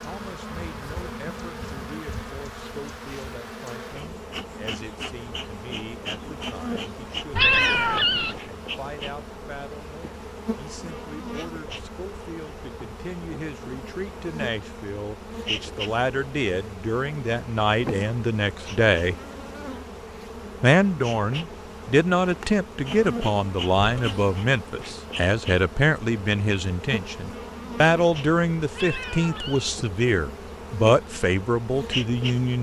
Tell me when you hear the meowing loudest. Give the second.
8 s.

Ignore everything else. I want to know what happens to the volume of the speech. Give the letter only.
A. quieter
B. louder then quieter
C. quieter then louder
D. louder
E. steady
D.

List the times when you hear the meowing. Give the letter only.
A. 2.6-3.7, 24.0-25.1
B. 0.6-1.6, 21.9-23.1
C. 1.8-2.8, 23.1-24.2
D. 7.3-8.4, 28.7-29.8
D.